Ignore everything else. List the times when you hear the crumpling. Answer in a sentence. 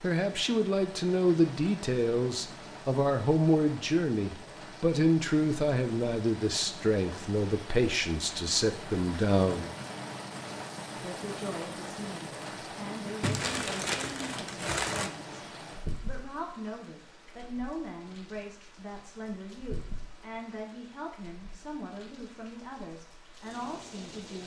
The crumpling can be heard from 13.2 to 15.1 s.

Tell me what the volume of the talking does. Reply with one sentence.
The loudness of the talking goes down.